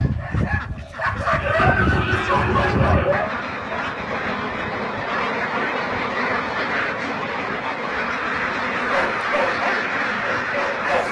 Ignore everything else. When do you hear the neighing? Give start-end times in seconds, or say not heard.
1.4-3.2.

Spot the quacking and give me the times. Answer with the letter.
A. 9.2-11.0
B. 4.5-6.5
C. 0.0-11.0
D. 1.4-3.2
C.